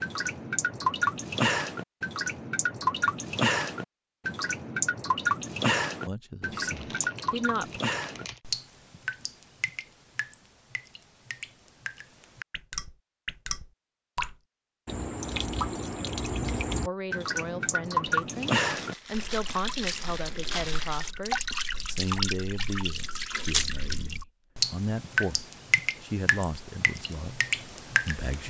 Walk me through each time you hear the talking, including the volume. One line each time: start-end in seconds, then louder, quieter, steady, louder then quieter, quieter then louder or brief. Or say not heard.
6.0-7.8 brief
16.9-28.4 steady.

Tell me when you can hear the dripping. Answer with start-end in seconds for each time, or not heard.
0.0-28.4.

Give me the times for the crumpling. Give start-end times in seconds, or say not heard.
6.5-8.4, 18.6-21.1.